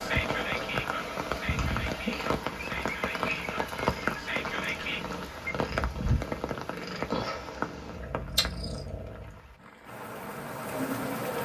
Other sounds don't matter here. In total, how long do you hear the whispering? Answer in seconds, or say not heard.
5 s.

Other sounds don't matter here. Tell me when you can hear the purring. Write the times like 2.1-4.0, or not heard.
0.0-9.4.